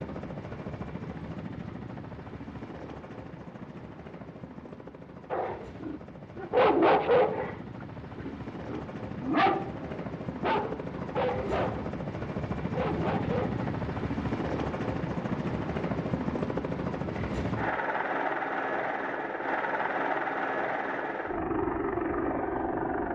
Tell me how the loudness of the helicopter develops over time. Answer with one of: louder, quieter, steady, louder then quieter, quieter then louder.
louder.